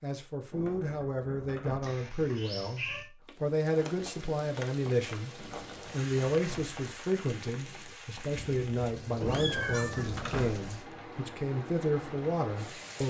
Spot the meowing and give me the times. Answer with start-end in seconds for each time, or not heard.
1.8-3.0, 8.3-10.1.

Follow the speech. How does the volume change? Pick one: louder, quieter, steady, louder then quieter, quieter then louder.
steady.